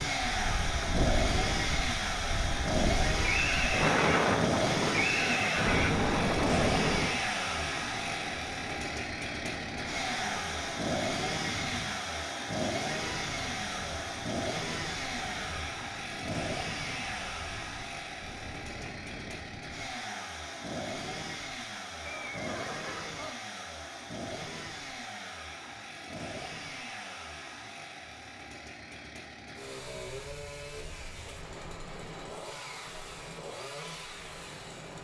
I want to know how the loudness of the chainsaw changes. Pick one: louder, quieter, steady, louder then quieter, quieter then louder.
quieter.